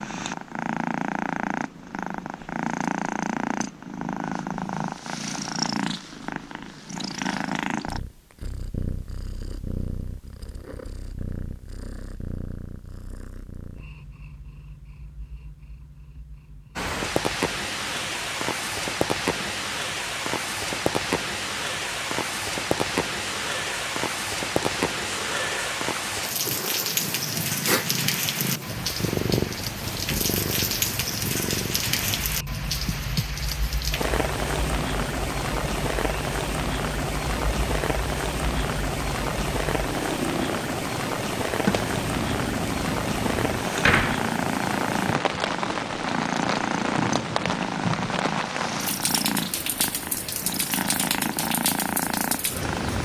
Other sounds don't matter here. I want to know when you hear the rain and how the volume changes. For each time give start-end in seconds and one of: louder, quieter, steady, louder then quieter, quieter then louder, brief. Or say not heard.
16.8-53.0 steady.